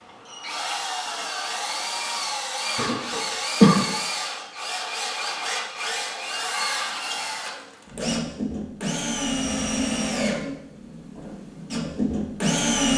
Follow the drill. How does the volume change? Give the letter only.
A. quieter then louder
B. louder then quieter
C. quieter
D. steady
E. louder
D.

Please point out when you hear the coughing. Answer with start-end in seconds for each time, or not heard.
2.8-4.0.